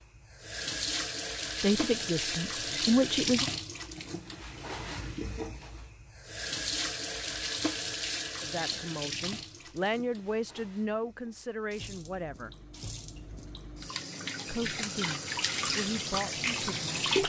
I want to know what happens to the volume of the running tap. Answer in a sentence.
The loudness of the running tap goes down, then up.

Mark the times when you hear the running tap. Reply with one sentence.
You can hear the running tap from 0.1 to 17.2 s.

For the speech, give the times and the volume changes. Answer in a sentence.
You can hear the speech briefly from 1.6 to 3.5 s; from 8.4 to 12.6 s, getting louder then quieter; and briefly from 14.4 to 16.9 s.